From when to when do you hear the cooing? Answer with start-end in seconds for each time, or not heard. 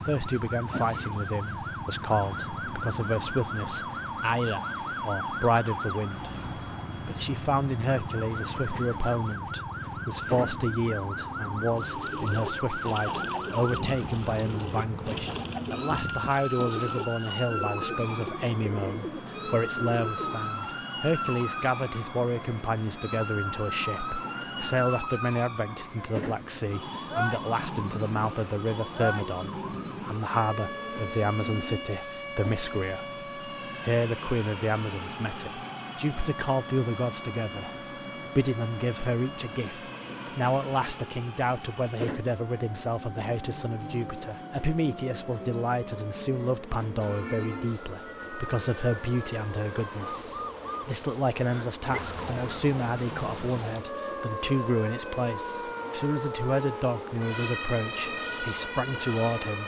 11.8-20.5.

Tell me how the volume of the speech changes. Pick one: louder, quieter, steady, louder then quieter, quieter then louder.
steady.